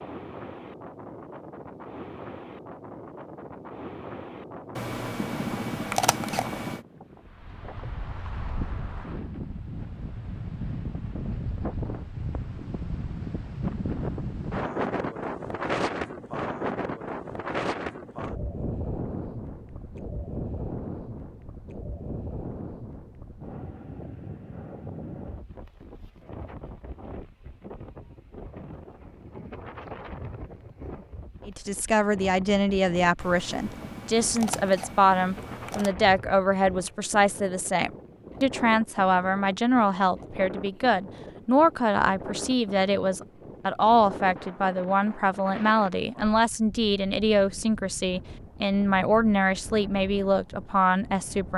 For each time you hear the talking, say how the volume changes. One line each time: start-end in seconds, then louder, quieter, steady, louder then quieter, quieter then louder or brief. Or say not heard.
31.4-51.5 steady.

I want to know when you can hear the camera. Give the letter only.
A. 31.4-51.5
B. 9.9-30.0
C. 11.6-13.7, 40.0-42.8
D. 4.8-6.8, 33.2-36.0
D.